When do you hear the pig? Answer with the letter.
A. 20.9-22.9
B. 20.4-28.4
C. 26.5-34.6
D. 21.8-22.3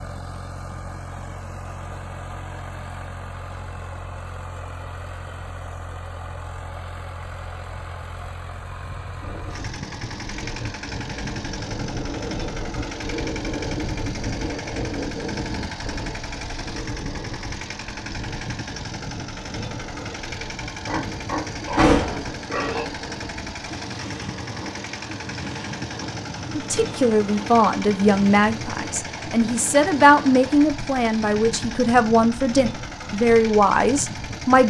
A.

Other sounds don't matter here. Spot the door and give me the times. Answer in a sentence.
You can hear the door from 21.8 to 22.3 s.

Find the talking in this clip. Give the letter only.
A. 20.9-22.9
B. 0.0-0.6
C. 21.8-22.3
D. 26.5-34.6
D.